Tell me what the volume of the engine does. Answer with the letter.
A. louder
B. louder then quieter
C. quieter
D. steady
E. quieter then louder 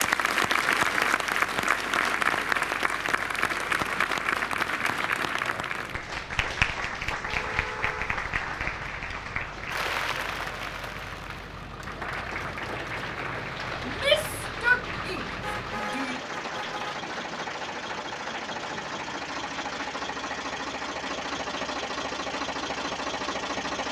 A.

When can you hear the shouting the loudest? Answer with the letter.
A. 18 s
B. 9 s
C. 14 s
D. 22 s
C.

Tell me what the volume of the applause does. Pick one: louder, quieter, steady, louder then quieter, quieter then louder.
quieter.